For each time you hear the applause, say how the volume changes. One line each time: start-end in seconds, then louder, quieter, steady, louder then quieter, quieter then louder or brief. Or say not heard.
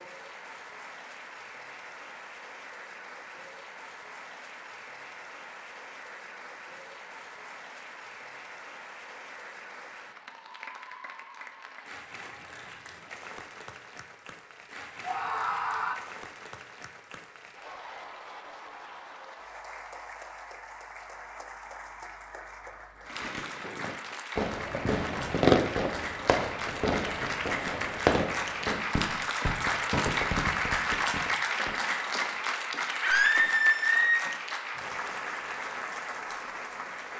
0.0-37.1 louder.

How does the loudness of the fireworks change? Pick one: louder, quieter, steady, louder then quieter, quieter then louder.
louder then quieter.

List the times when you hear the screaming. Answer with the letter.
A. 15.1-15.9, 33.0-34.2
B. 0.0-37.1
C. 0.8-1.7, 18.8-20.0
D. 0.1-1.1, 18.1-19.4
A.